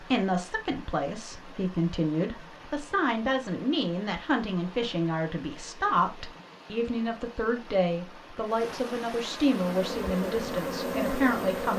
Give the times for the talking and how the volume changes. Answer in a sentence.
The talking can be heard from 0.0 to 11.7 s, at a steady volume.